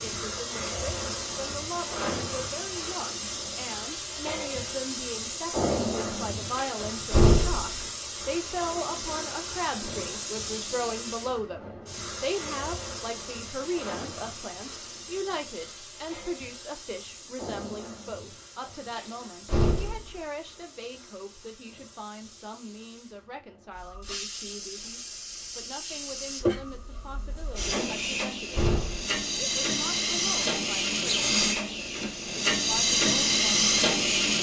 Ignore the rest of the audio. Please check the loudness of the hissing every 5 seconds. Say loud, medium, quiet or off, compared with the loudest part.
medium, medium, quiet, quiet, quiet, medium, loud.